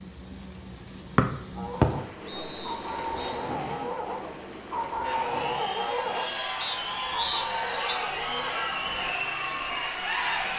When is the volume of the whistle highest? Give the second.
2 s.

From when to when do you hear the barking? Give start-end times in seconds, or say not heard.
1.6-9.2.